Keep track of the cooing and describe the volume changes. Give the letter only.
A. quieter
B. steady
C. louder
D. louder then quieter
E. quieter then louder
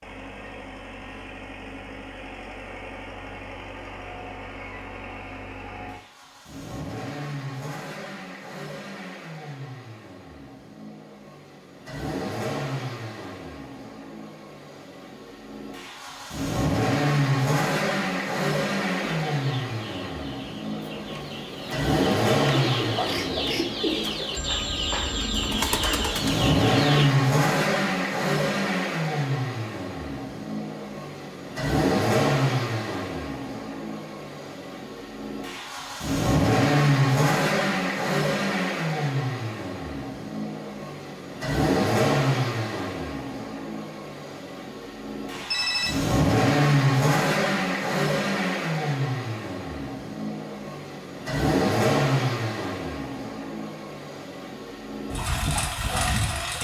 C.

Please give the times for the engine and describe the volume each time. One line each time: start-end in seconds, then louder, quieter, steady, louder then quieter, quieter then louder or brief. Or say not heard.
0.0-56.5 louder.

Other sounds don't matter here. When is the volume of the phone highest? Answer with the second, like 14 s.
46 s.